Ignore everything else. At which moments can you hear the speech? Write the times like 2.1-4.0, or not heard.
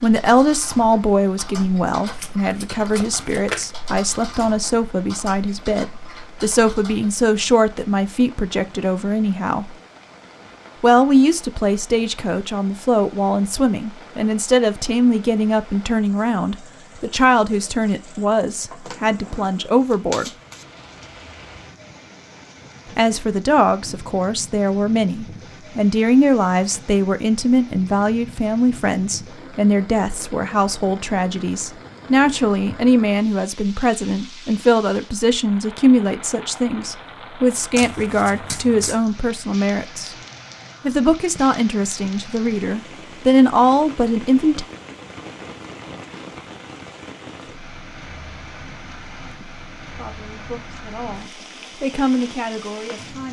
0.0-9.8, 10.8-20.3, 22.9-40.1, 40.9-44.6, 49.8-53.2.